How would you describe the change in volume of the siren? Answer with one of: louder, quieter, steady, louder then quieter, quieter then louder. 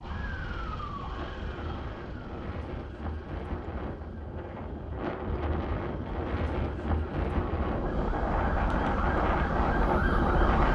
quieter then louder.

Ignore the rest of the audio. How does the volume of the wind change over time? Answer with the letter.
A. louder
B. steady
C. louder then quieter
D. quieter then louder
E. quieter
A.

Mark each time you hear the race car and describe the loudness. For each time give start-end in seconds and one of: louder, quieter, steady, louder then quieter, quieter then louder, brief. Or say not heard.
not heard.